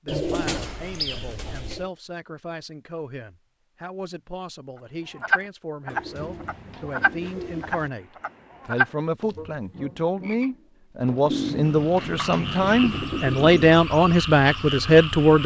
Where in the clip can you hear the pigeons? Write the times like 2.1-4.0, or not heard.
0.1-1.9, 5.8-7.9, 11.2-13.8.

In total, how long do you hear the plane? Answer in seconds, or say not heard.
not heard.